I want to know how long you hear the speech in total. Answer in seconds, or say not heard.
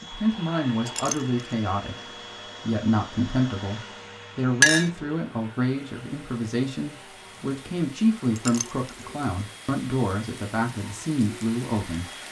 12 s.